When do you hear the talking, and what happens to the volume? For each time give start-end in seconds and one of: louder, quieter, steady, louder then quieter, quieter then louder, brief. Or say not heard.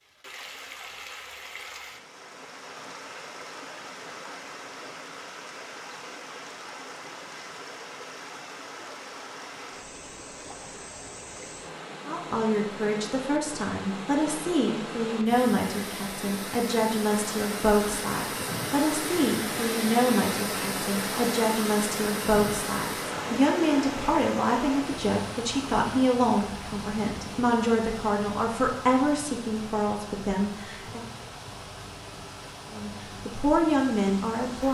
12.1-31.1 steady
32.7-34.6 brief.